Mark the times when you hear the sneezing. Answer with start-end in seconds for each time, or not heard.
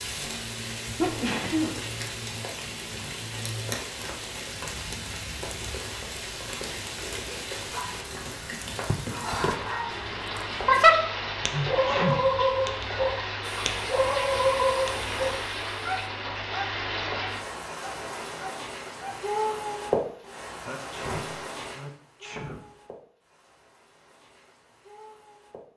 0.9-1.8, 11.2-12.2, 20.4-22.6.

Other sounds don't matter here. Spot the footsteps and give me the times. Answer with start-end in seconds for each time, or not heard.
not heard.